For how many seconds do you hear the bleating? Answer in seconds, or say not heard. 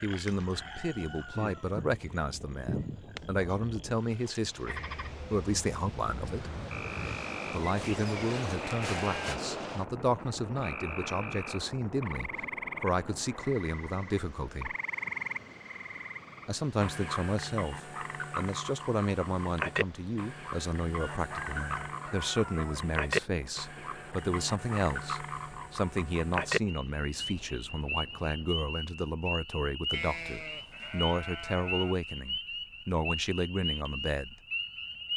4 s.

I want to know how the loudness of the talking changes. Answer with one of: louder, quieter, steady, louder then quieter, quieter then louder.
steady.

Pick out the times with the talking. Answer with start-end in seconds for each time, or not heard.
0.0-6.5, 7.5-14.8, 16.4-34.4.